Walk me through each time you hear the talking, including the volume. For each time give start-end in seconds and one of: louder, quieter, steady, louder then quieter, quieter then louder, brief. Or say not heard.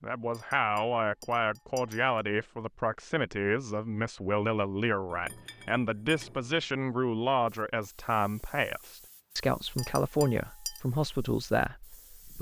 0.0-12.3 steady.